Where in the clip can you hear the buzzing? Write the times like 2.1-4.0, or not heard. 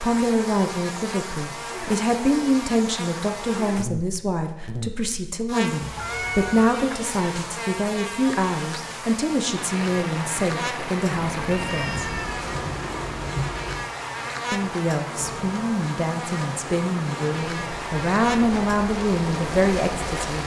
0.0-20.4.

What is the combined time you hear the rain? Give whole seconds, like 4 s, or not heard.
11 s.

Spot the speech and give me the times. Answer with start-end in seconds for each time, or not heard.
0.0-12.1, 14.5-20.4.